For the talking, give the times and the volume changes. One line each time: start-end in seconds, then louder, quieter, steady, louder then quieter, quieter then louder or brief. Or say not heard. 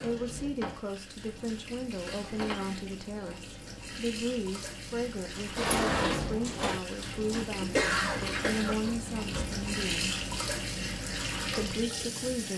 0.0-10.2 steady
11.5-12.5 brief.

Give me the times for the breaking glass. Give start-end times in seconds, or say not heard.
not heard.